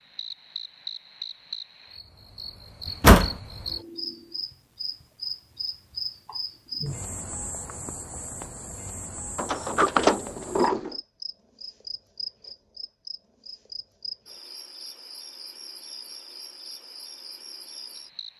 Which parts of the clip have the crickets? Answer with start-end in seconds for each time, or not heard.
0.0-18.3.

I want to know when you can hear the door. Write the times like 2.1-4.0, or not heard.
2.9-3.4, 9.3-10.9.